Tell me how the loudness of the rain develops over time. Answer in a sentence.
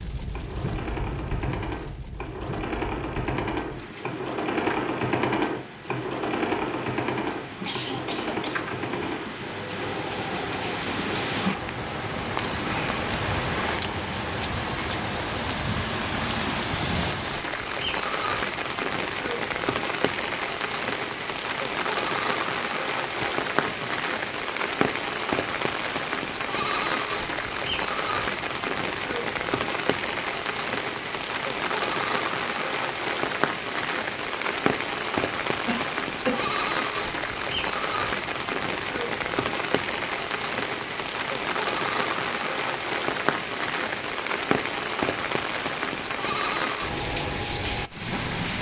The volume of the rain goes up.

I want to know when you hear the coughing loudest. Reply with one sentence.
The loudest moment of the coughing is at 36 seconds.